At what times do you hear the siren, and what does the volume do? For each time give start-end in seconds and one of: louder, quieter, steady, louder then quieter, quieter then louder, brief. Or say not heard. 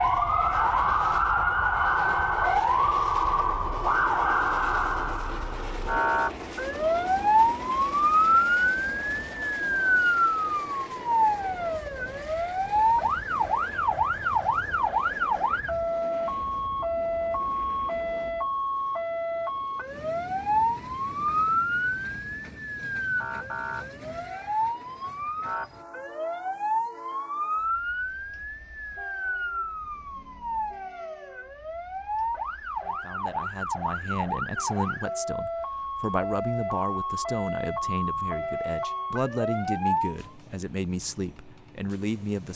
0.0-40.3 quieter.